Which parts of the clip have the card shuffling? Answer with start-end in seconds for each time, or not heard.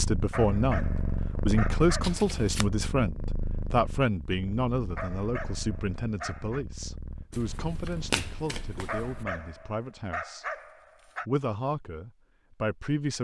2.0-2.6, 7.3-9.2.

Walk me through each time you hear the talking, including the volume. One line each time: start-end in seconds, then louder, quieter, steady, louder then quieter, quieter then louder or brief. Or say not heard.
0.0-10.4 quieter
11.2-13.1 brief.